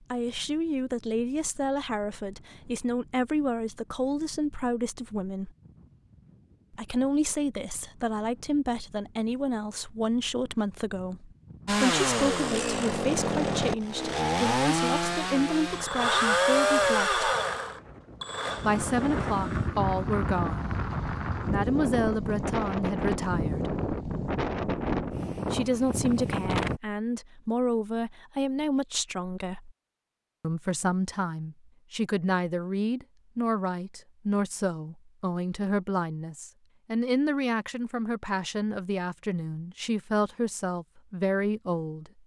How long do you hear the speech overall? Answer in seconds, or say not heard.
36 s.